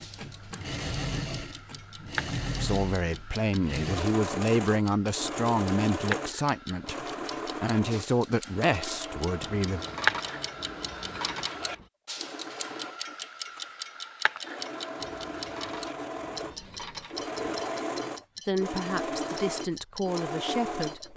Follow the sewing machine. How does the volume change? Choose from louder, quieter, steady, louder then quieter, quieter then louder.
quieter then louder.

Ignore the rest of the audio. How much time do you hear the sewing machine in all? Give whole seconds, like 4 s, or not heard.
21 s.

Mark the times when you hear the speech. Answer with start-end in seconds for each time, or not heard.
2.6-7.0, 7.6-9.8, 18.4-21.1.